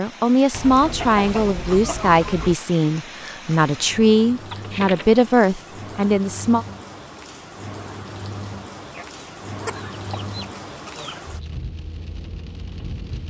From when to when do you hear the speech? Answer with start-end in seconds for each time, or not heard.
0.0-6.7.